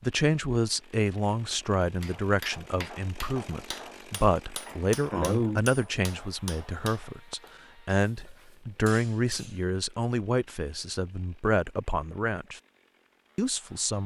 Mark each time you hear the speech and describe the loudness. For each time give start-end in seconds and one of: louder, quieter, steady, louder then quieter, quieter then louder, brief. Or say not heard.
0.0-12.6 steady
13.3-14.0 brief.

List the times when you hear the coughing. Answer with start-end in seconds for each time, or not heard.
4.7-5.6.